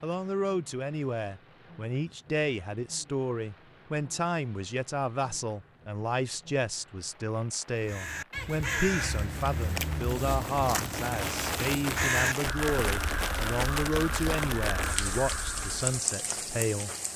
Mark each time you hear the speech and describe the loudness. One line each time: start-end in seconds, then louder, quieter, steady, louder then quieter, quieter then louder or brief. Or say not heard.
0.0-16.9 steady.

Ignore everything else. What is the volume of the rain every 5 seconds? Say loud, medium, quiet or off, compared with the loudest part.
quiet, quiet, loud, loud.